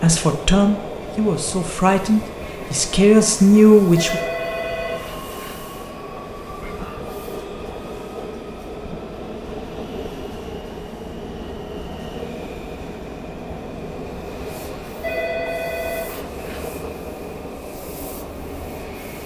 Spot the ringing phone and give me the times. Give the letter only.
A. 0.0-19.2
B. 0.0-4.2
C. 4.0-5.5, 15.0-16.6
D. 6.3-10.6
C.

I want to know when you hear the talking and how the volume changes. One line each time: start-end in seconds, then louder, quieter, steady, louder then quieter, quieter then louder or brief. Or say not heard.
0.0-4.2 quieter then louder.